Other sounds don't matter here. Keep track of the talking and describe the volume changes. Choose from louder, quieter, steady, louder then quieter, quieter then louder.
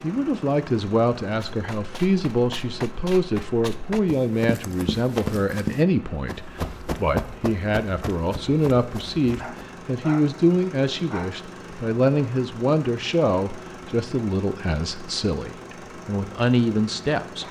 steady.